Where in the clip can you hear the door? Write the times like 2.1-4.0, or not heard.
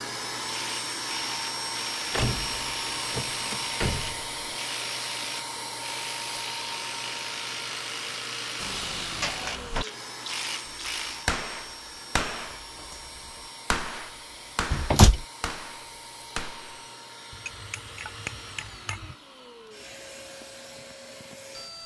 2.1-4.3, 8.6-9.8, 14.7-15.2.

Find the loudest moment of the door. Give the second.
15 s.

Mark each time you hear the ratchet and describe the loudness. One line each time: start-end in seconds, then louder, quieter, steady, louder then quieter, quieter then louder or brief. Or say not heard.
0.5-11.3 steady.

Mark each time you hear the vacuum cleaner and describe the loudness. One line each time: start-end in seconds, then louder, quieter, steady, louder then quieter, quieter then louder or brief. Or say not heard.
0.0-21.8 quieter.